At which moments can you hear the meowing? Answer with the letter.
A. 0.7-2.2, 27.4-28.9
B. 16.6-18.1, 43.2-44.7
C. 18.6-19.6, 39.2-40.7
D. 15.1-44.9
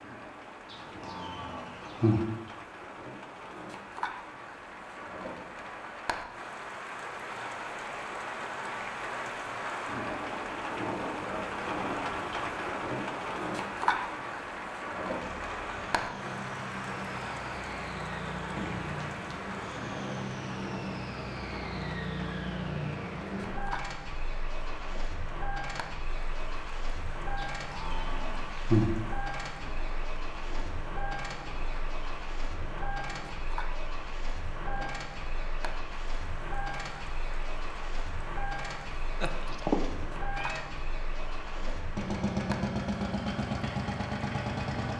C.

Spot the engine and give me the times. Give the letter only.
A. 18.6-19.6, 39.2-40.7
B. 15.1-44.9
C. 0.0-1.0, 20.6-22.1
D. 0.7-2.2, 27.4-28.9
B.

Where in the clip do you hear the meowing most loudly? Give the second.
40 s.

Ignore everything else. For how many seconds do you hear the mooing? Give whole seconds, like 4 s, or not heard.
3 s.